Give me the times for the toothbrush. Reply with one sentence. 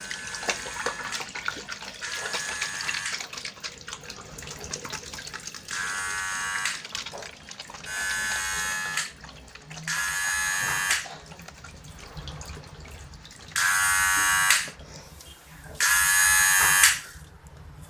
The toothbrush can't be heard in this clip.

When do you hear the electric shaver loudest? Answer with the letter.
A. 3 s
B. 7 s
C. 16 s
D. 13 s
C.